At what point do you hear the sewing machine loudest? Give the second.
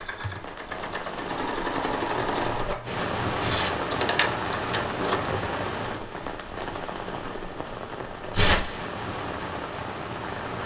2 s.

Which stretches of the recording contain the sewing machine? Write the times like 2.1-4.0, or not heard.
0.0-5.2.